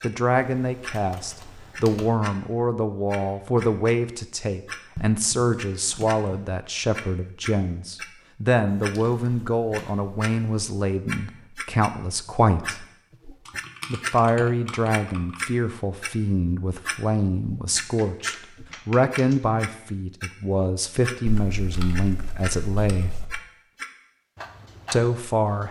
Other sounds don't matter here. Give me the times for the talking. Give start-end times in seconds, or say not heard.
0.0-12.8, 13.9-23.2, 24.9-25.6.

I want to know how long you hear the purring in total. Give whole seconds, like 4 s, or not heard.
not heard.